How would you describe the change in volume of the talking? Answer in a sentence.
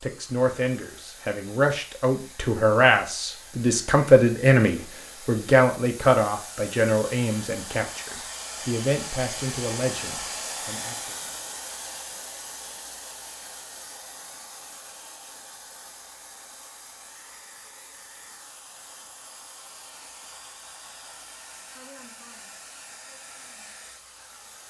The loudness of the talking goes up, then down.